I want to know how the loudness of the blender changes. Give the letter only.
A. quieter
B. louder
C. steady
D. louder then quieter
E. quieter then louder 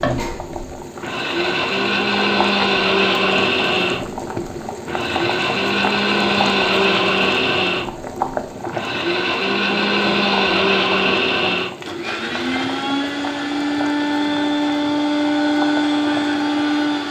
C.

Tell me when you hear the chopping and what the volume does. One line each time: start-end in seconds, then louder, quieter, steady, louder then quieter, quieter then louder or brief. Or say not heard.
not heard.